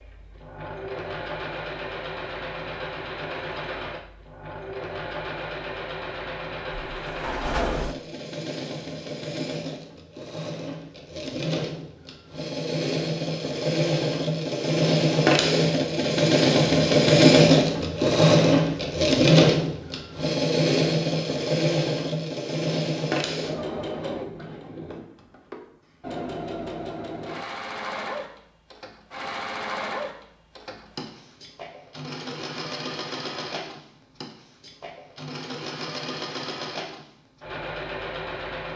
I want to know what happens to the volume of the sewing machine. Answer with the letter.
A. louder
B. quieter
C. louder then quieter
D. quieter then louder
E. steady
C.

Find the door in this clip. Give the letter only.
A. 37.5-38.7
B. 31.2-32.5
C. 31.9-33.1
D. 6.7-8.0
D.